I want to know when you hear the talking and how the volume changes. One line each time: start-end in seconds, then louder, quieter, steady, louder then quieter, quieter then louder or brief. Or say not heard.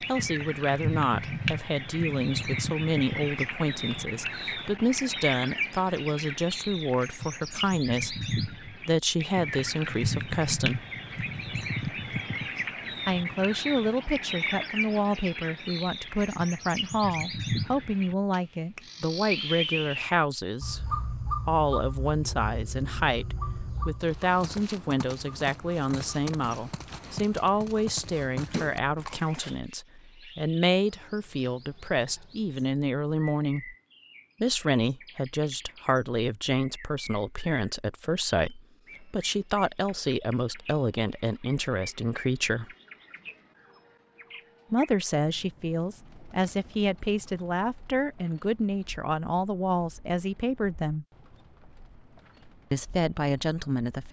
0.1-10.8 steady
13.1-33.8 steady
34.4-42.6 steady
44.7-51.0 steady
52.7-54.0 brief.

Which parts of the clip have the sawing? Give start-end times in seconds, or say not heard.
not heard.